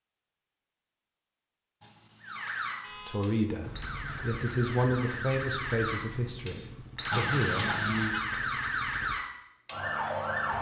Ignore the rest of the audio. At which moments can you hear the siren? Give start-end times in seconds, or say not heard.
2.2-10.5.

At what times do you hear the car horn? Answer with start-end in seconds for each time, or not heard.
1.8-3.4, 7.1-8.2.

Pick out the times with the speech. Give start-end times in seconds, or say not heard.
3.0-8.2.